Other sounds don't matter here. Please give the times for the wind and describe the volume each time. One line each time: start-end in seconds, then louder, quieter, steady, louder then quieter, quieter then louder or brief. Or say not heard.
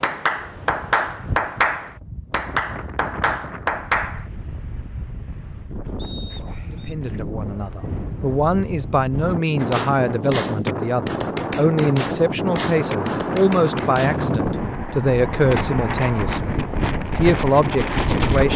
0.0-18.5 louder.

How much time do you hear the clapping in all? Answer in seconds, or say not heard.
9 s.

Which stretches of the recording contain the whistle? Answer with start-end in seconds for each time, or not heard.
6.0-7.0.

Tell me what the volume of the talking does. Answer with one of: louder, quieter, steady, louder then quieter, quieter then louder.
steady.